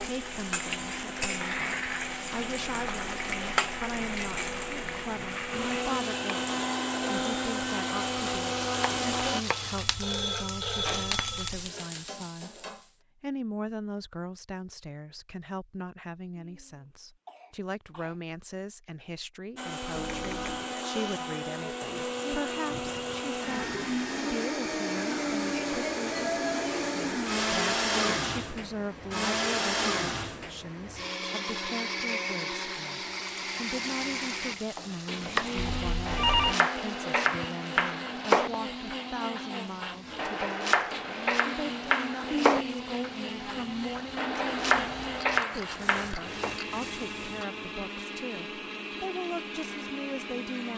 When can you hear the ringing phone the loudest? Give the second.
36 s.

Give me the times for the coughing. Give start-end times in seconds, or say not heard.
16.4-18.1, 42.3-42.9.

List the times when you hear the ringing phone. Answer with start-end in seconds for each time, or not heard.
9.5-11.5, 19.9-20.6, 35.5-36.5.